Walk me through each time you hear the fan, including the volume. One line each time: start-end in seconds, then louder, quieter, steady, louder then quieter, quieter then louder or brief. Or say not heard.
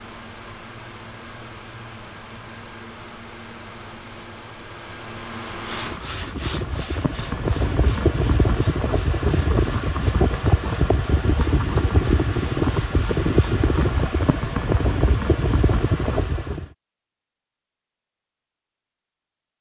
0.0-16.6 louder.